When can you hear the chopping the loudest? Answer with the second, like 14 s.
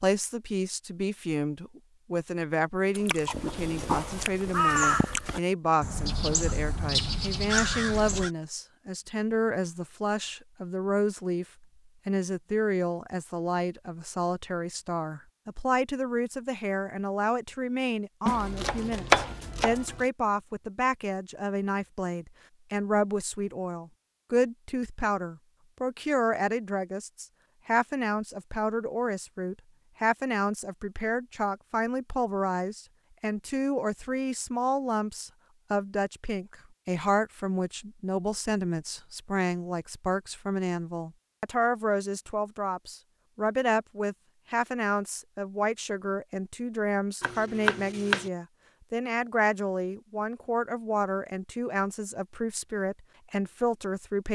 19 s.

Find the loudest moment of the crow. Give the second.
5 s.